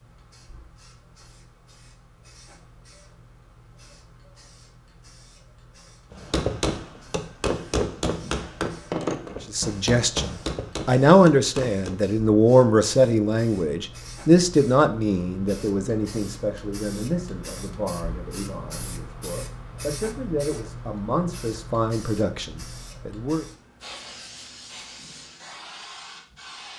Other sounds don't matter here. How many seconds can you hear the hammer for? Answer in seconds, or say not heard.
6 s.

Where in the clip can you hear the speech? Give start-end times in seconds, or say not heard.
9.5-23.4.